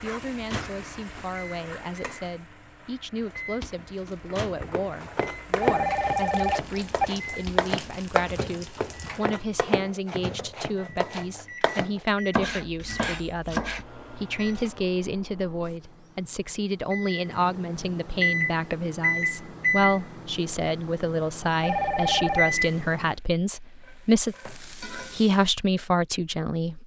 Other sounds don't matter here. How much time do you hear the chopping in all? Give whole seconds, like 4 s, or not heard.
9 s.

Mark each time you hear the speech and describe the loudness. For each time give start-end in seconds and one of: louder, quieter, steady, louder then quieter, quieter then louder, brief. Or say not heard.
0.0-26.8 louder.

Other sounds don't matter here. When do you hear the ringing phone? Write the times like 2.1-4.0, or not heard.
5.6-7.1, 21.6-22.6.